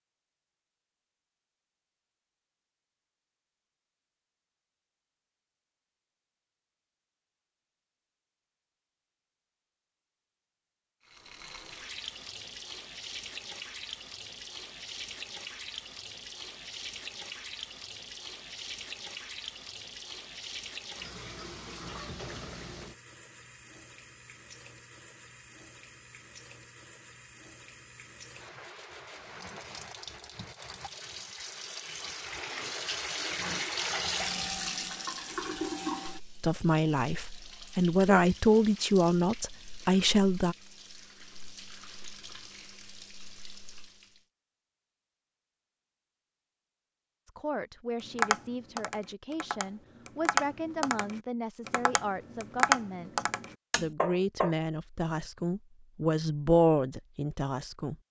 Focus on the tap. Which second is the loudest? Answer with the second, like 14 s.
34 s.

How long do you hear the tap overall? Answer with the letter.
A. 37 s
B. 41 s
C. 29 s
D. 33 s
D.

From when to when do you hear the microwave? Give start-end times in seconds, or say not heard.
not heard.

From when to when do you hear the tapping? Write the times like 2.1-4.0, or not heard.
48.1-54.5.